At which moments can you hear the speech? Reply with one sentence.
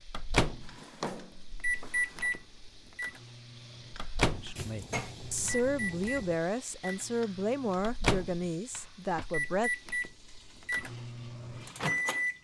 You can hear the speech from 4.3 to 9.7 s.